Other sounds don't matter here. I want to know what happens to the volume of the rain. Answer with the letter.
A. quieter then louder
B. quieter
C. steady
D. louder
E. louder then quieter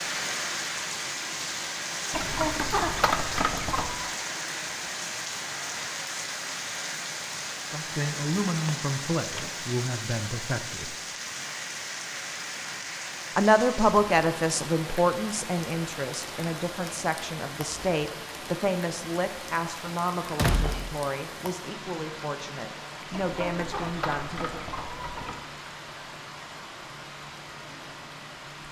B.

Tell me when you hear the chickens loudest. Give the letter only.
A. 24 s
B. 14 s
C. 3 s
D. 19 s
C.